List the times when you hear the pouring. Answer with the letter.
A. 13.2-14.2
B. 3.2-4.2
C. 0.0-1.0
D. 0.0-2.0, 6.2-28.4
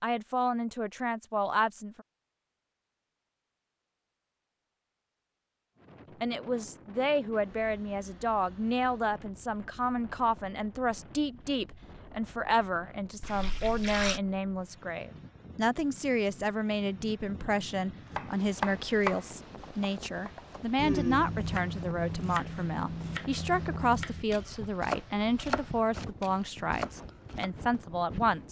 A.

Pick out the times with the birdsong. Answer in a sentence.
The birdsong can't be heard in this clip.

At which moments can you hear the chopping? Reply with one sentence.
The chopping can be heard from 18.1 to 27.5 s.